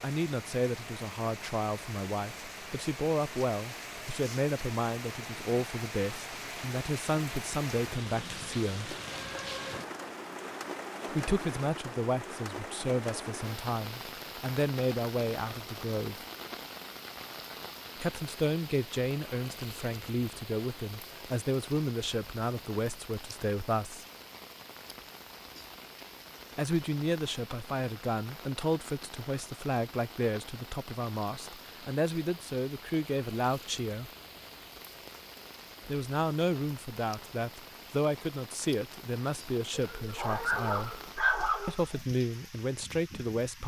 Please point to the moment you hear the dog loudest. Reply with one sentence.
The loudest moment of the dog is at 41 seconds.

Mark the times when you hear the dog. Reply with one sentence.
The dog can be heard from 39.7 to 42.1 s.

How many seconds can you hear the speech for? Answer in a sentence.
The speech can be heard for 35 seconds in total.